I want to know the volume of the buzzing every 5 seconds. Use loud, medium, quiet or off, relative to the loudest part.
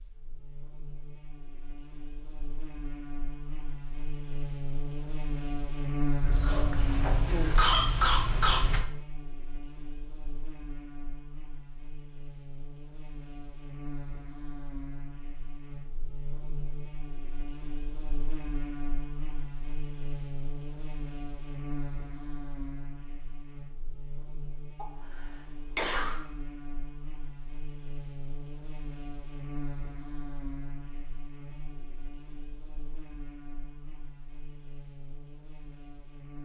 medium, loud, medium, medium, medium, medium, medium, quiet.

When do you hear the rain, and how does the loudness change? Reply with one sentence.
The rain can't be heard in this clip.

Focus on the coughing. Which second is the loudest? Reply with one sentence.
The loudest moment of the coughing is at 8 seconds.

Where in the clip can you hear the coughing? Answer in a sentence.
The coughing can be heard from 6.2 to 8.8 s and from 24.8 to 26.2 s.